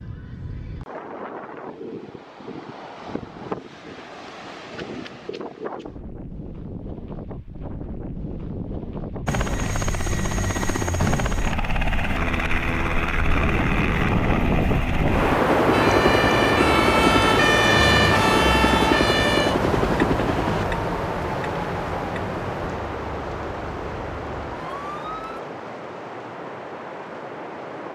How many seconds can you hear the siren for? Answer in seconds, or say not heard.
10 s.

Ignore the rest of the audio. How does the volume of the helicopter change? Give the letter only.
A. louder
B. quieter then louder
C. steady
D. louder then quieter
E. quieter
C.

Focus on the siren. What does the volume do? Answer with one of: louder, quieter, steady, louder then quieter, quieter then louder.
quieter.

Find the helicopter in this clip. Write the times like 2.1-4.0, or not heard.
9.2-20.6.